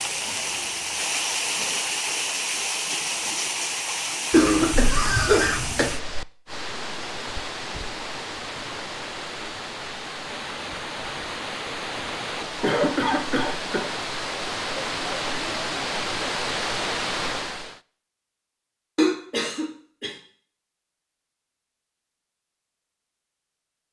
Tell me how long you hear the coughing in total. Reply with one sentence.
The coughing can be heard for 4 seconds in total.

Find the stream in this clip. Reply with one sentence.
You can hear the stream from 0.0 to 17.8 s.